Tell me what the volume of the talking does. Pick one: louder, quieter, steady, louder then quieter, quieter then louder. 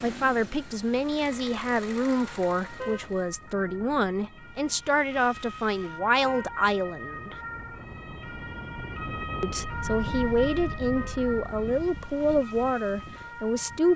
steady.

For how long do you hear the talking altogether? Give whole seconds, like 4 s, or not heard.
12 s.